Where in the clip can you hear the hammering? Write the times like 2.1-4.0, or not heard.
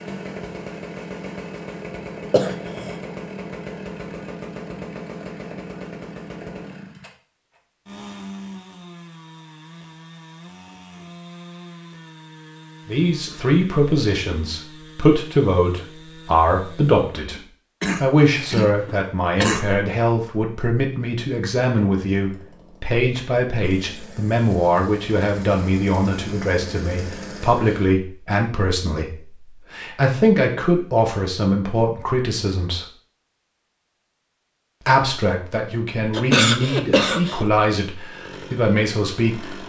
not heard.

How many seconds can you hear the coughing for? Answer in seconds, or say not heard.
4 s.